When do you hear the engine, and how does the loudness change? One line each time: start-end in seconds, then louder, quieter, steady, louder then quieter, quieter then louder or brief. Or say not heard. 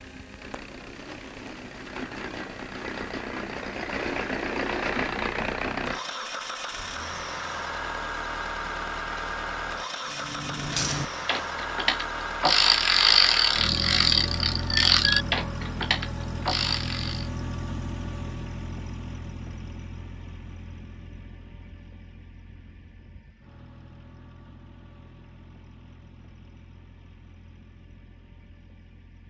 0.0-29.2 quieter.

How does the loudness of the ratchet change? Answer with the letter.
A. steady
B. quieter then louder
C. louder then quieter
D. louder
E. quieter
C.